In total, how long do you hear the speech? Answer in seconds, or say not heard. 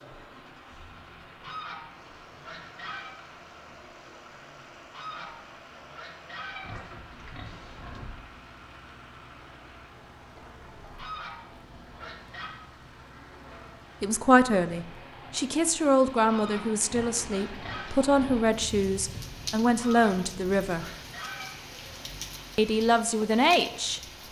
8 s.